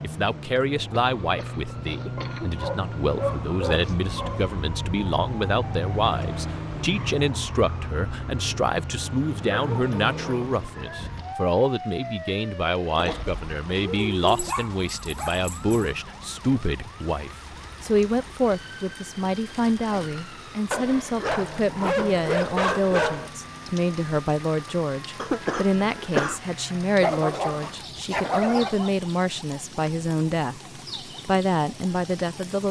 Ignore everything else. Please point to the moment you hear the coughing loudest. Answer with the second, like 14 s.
26 s.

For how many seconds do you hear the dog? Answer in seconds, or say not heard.
10 s.